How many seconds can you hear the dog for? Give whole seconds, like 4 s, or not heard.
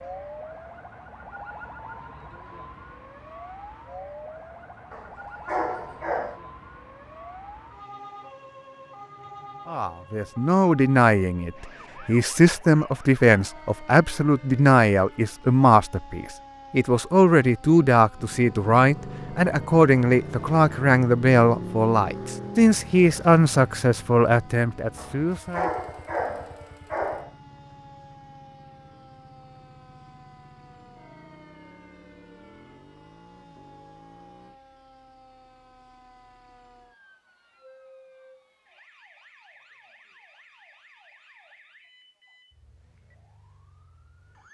4 s.